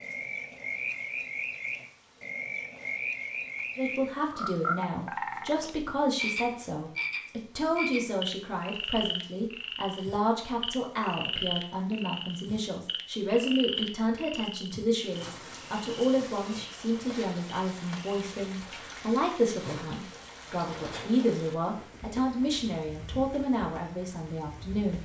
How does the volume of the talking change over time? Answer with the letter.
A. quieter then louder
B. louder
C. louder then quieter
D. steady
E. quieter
D.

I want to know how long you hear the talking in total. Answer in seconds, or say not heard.
21 s.